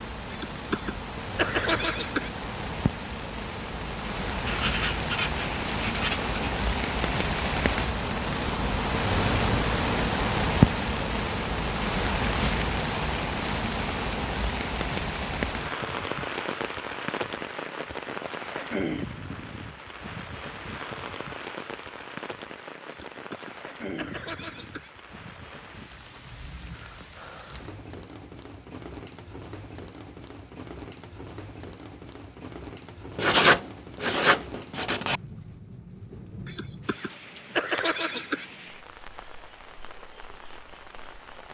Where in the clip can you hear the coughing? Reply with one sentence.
The coughing can be heard from 0.3 to 2.3 s, from 22.9 to 24.9 s and from 36.5 to 38.5 s.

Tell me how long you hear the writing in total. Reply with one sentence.
You can hear the writing for 4 seconds altogether.